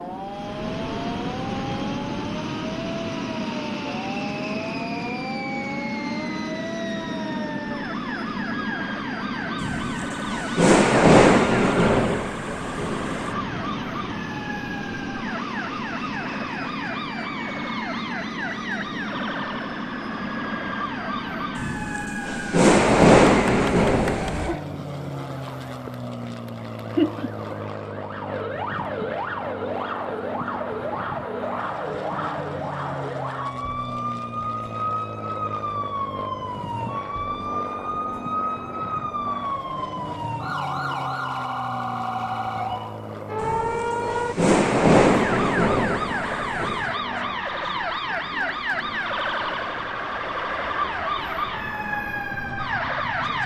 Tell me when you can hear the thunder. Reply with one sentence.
The thunder can be heard from 9.6 to 13.3 s, from 21.6 to 24.5 s and from 43.4 to 46.9 s.